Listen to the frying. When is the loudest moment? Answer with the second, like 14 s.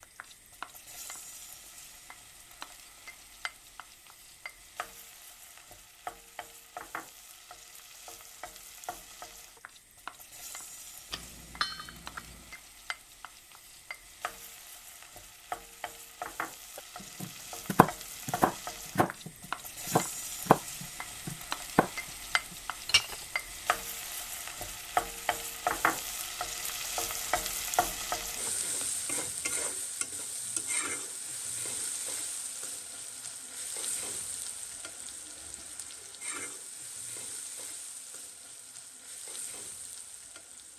25 s.